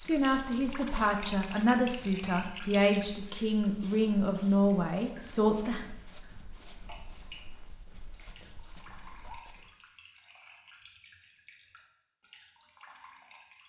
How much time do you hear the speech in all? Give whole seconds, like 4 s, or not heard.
6 s.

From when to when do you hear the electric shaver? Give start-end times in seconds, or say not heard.
not heard.